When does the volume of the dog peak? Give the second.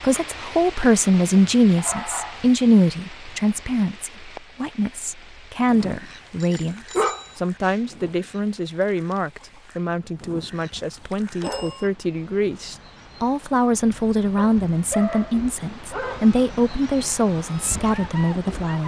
7 s.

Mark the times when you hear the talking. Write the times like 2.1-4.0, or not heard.
0.0-18.8.